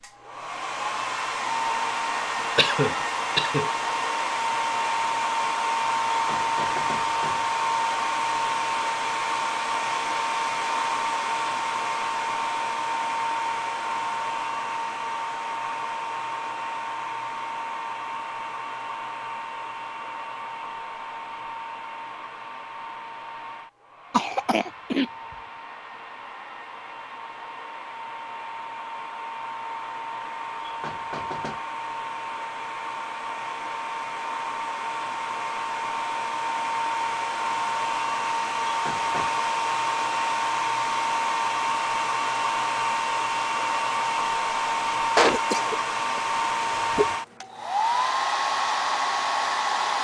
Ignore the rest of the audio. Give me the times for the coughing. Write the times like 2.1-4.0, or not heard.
2.5-3.7, 24.1-25.1, 45.1-47.1.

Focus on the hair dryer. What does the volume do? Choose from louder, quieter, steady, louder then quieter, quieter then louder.
quieter then louder.